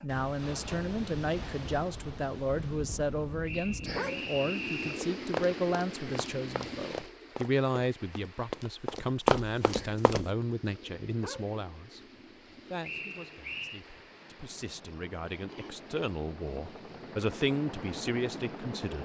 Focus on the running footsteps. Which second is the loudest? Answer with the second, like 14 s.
9 s.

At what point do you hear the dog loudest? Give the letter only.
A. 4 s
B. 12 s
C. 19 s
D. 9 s
A.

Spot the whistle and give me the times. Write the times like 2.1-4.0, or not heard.
3.5-5.1, 12.8-13.8.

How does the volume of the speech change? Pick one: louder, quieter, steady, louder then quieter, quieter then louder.
quieter then louder.